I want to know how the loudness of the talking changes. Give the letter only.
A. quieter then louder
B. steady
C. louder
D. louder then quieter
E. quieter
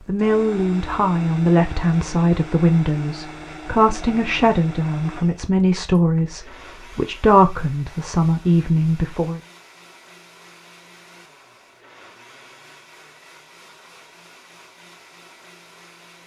B.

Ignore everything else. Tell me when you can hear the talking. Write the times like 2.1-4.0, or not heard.
0.1-9.4.